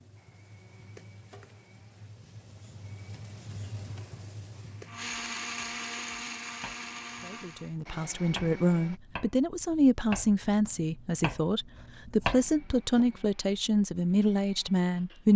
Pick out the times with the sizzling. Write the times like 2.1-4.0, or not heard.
0.0-5.2.